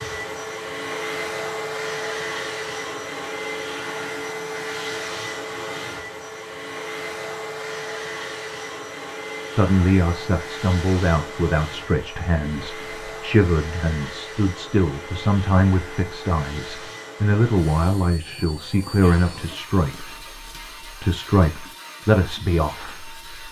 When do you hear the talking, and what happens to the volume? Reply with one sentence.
The talking can be heard from 9.6 to 23.4 s, at a steady volume.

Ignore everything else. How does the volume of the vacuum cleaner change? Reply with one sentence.
The loudness of the vacuum cleaner goes down.